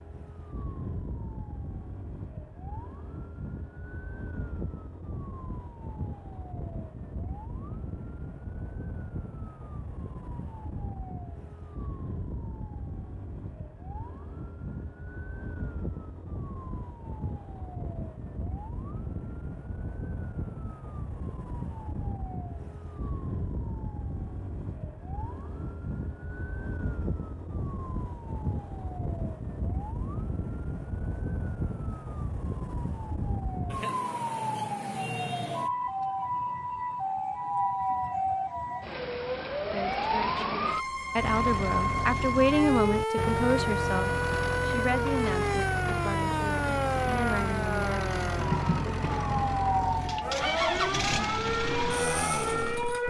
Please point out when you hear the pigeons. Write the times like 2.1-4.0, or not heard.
not heard.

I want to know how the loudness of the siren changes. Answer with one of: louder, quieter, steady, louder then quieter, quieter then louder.
louder.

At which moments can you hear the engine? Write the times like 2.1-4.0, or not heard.
41.1-53.0.